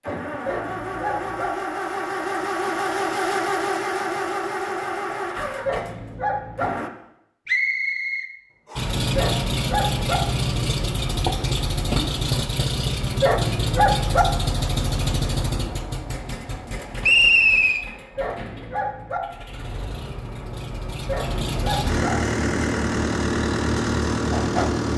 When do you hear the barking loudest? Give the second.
14 s.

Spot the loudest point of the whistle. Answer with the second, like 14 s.
17 s.